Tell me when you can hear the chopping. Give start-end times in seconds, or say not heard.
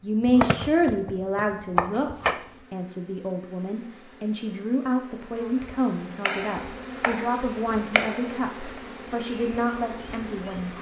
0.2-2.4, 6.2-8.8.